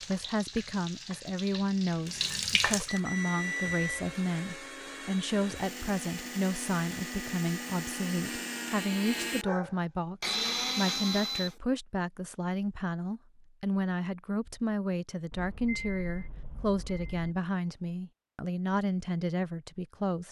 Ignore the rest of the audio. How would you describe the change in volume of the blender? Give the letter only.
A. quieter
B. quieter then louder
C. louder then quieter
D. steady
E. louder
E.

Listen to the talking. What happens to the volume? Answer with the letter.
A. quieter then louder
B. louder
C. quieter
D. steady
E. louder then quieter
D.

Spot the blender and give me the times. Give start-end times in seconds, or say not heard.
2.8-11.6.